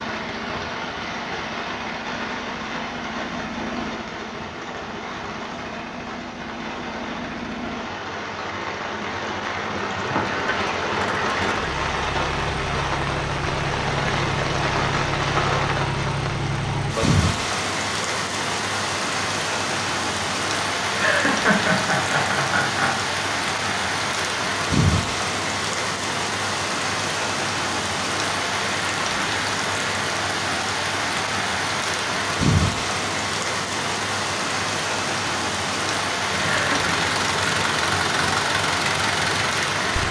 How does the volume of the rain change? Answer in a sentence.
The volume of the rain goes up.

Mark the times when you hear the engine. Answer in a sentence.
The engine can be heard from 0.0 to 16.9 s and from 36.3 to 40.0 s.